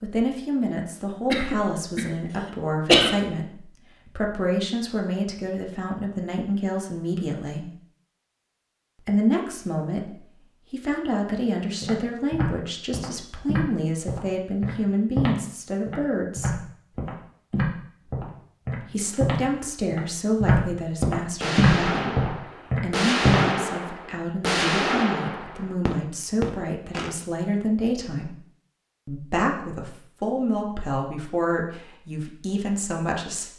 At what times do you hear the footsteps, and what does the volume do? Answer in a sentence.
You can hear the footsteps from 11.8 to 23.4 s, getting louder.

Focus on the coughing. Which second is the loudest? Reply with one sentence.
The volume of the coughing peaks at 3 seconds.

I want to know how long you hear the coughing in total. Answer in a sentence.
The coughing can be heard for 2 seconds in total.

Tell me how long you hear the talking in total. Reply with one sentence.
You can hear the talking for 29 seconds altogether.